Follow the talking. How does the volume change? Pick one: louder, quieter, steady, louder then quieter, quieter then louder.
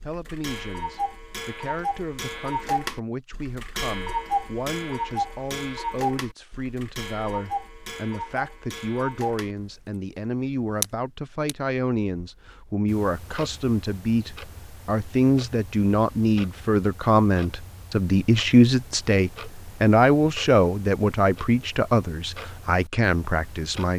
louder.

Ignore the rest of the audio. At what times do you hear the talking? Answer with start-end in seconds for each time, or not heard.
0.0-23.9.